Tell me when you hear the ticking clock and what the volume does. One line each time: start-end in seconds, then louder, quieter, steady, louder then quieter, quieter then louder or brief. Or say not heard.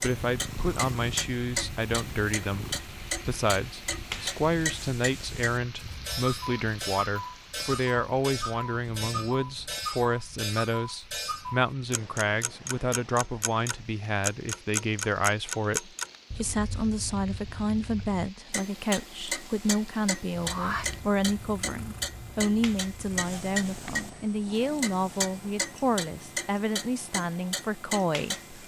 0.0-28.6 steady.